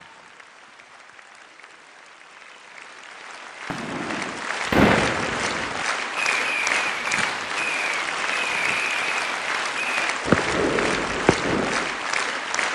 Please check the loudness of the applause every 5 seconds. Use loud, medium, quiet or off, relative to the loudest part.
medium, loud, loud.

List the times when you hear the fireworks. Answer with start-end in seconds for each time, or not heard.
3.7-12.0.